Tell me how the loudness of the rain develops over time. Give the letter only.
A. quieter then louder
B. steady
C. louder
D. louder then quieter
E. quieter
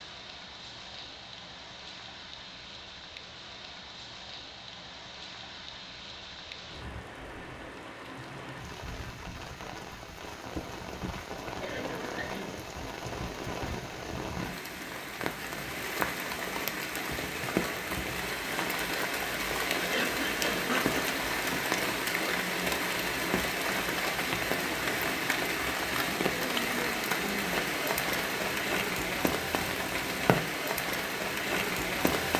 C.